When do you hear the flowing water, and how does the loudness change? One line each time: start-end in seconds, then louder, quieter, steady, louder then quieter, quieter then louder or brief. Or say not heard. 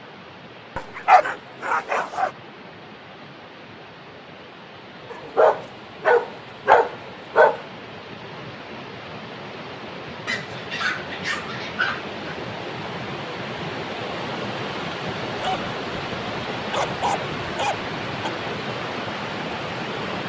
0.0-20.2 louder.